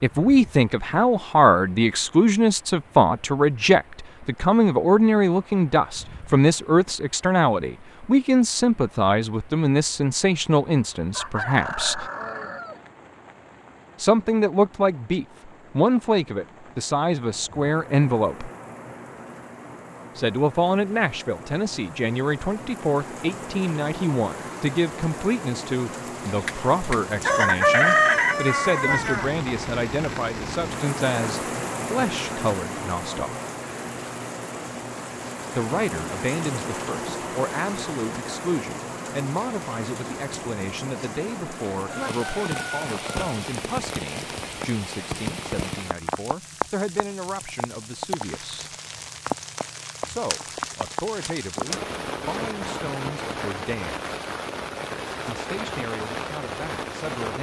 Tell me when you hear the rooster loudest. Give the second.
28 s.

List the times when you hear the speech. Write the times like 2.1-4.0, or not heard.
0.0-12.1, 14.0-18.5, 20.1-33.4, 35.5-48.6, 50.0-54.1, 55.2-57.3.